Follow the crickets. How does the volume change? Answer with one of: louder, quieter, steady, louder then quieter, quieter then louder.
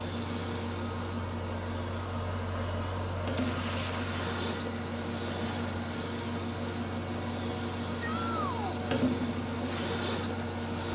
louder.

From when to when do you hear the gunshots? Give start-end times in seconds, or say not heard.
3.4-4.2.